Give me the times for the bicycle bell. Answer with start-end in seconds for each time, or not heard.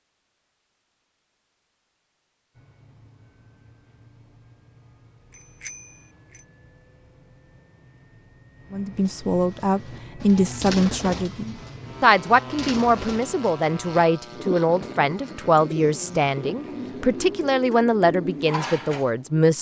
5.3-6.5.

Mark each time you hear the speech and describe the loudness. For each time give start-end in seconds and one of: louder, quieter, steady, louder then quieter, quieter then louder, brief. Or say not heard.
8.7-19.5 steady.